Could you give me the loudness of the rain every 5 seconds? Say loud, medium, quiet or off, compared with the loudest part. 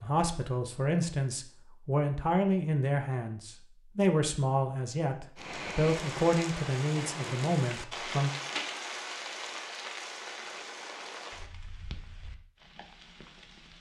off, loud, medium.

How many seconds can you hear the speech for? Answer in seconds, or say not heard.
8 s.